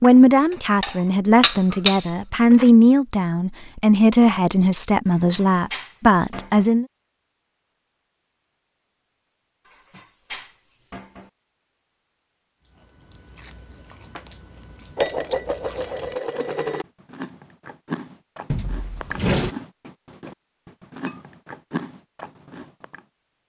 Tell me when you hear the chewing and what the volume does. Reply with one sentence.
The chewing can be heard from 12.7 to 23.1 s, getting louder.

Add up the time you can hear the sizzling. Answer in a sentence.
You can't hear the sizzling here.